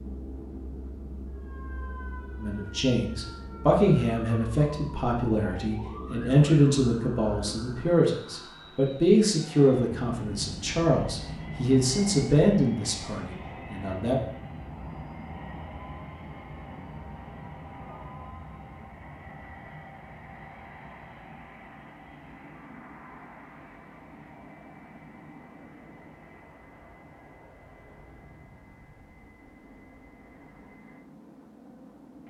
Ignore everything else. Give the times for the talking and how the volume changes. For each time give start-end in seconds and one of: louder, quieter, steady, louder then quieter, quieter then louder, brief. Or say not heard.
2.4-14.2 steady.